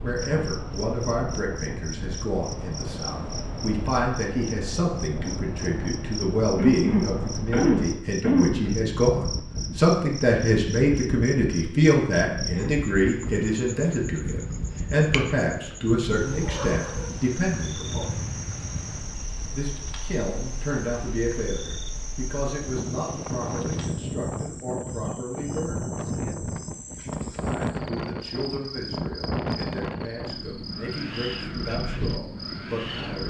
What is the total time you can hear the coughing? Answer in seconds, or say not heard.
2 s.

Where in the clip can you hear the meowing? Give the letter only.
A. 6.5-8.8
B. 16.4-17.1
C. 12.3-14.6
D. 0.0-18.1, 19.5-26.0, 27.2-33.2
B.